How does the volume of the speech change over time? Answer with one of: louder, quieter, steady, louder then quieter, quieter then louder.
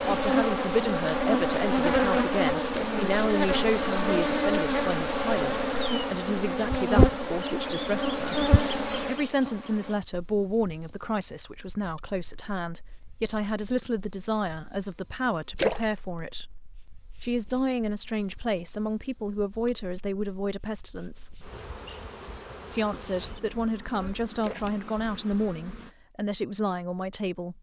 steady.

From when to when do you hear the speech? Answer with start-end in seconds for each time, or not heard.
0.1-16.6, 17.2-21.4, 22.7-27.5.